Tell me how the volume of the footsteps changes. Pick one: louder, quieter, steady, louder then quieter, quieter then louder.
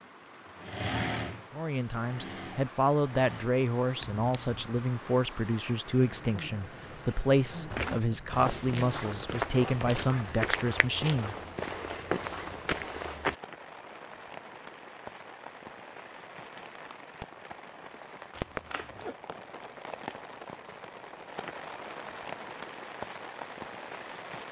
steady.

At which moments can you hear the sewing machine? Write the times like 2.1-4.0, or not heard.
0.0-3.6.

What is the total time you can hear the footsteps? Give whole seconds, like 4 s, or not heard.
6 s.